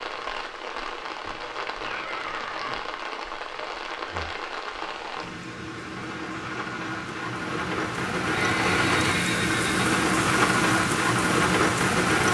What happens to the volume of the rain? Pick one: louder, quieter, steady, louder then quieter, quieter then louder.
louder.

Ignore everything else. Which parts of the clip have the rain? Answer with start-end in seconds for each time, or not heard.
0.0-12.2.